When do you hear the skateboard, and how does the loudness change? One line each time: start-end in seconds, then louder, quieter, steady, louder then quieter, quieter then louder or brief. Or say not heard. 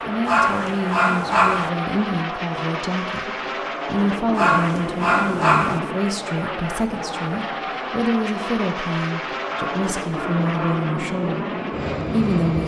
not heard.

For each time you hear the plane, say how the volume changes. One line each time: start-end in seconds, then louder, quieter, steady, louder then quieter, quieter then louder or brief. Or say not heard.
0.0-12.6 steady.